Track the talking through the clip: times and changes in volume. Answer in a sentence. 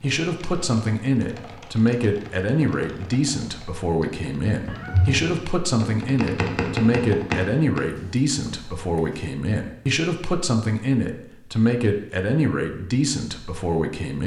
You can hear the talking from 0.0 to 14.2 s, at a steady volume.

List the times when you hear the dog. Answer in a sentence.
You can't hear the dog here.